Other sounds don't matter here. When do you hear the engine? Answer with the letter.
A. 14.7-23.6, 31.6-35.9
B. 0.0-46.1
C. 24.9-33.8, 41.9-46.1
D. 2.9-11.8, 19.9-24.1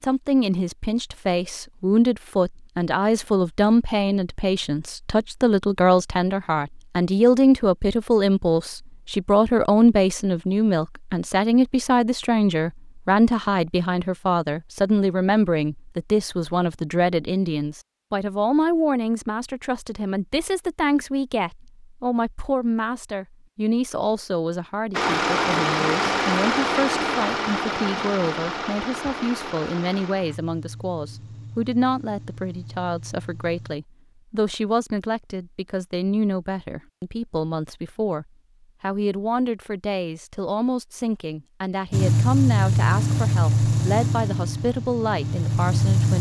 C.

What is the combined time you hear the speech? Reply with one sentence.
The speech can be heard for 46 seconds in total.